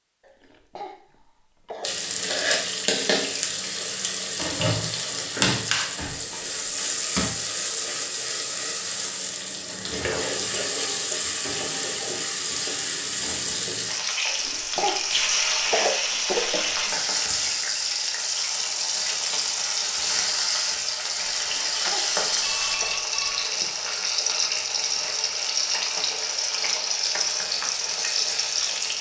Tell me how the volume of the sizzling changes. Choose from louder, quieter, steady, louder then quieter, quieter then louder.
steady.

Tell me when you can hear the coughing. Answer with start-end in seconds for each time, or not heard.
0.2-2.0, 14.2-16.9, 21.4-23.0.